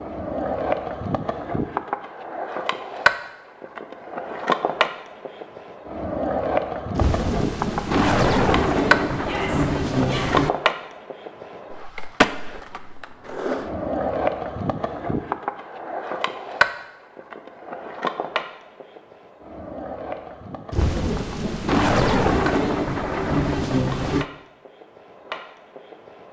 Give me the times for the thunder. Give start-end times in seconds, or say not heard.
7.0-10.5, 20.7-24.2.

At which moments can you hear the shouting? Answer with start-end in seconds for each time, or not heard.
9.2-10.3.